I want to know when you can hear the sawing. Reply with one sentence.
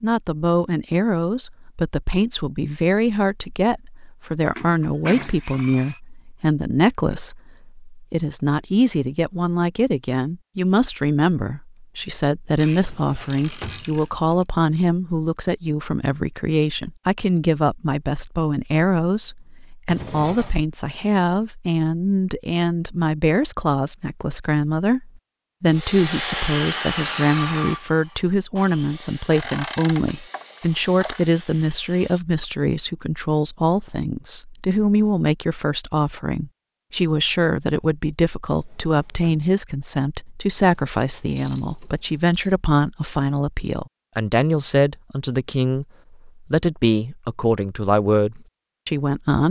The sawing can be heard from 25.7 to 32.5 s.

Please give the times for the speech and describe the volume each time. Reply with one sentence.
The speech can be heard from 0.0 to 49.4 s, at a steady volume.